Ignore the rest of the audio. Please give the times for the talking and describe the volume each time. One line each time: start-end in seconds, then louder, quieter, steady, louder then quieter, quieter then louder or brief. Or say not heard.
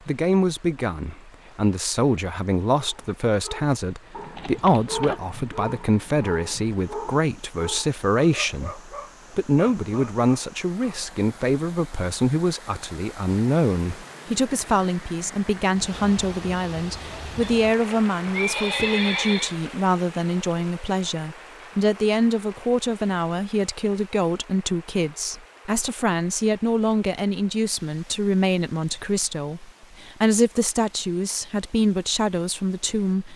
0.1-33.3 steady.